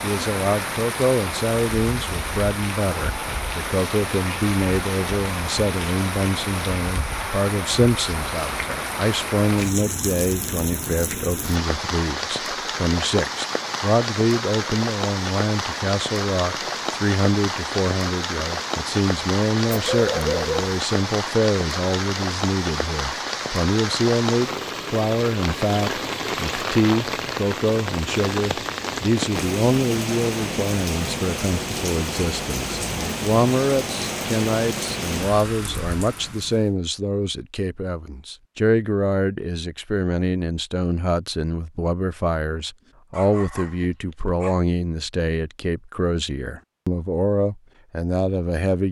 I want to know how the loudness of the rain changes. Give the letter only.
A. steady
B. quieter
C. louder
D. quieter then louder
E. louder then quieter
A.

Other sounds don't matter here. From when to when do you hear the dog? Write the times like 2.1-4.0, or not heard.
19.7-20.7, 43.1-44.6.